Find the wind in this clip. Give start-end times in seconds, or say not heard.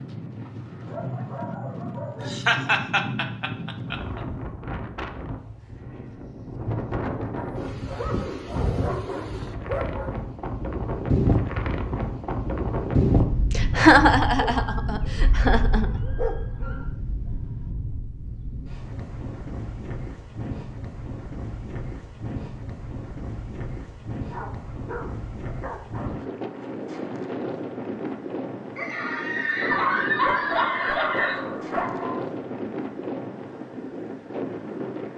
0.0-35.1.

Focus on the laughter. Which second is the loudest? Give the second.
14 s.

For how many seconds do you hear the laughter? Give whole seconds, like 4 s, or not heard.
7 s.